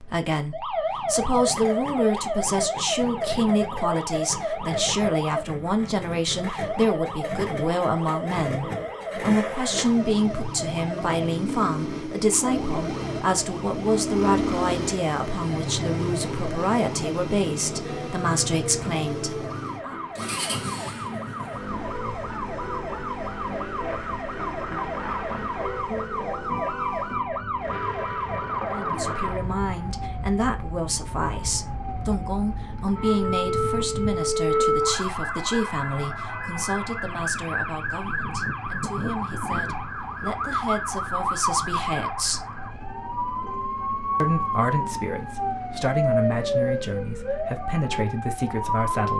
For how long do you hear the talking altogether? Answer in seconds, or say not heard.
39 s.